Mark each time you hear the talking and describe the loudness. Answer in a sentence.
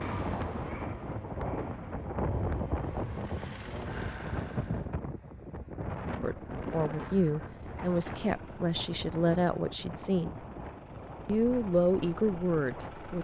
The talking can be heard from 6.2 to 10.4 s, at a steady volume; and briefly from 11.2 to 13.1 s.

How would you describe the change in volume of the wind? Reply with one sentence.
The volume of the wind goes down.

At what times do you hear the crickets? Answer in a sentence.
The crickets can't be heard in this clip.